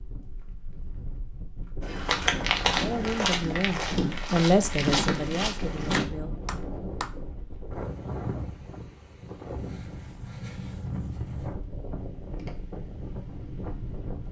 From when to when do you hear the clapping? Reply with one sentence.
The clapping can be heard from 5.9 to 7.2 s.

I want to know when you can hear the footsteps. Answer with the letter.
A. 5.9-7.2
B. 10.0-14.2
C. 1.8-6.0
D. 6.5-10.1
C.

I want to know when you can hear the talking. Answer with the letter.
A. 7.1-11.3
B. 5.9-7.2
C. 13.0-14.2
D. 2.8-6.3
D.